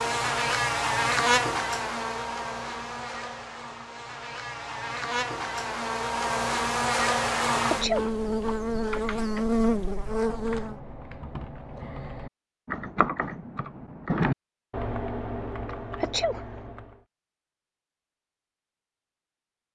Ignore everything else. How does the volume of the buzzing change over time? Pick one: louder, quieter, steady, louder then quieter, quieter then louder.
quieter then louder.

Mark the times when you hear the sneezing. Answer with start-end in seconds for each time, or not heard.
7.7-8.2, 15.9-16.6.